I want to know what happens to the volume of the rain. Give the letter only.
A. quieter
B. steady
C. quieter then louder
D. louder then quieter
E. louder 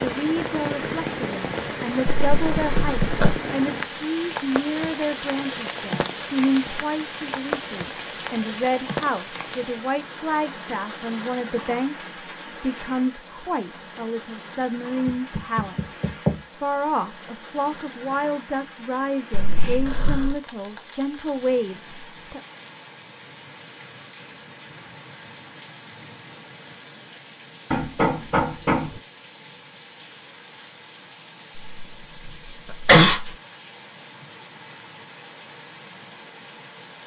A.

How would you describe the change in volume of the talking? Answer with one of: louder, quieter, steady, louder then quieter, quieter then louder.
steady.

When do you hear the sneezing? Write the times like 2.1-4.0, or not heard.
2.0-3.4, 19.3-20.4, 31.6-33.3.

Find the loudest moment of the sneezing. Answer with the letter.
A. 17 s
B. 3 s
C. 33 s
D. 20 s
C.